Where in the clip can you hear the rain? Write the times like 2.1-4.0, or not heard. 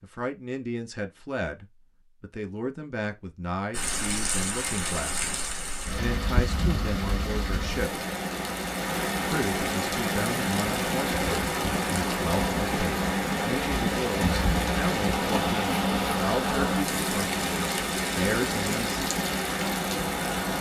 3.7-20.5.